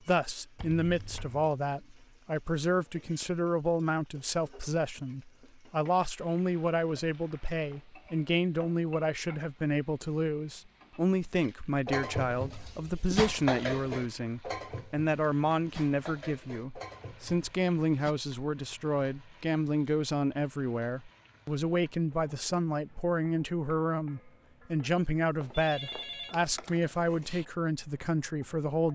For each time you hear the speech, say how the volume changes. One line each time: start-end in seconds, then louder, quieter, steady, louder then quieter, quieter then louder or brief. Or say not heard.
0.1-28.9 steady.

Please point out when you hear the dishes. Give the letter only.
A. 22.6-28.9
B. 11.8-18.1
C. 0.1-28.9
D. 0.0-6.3
B.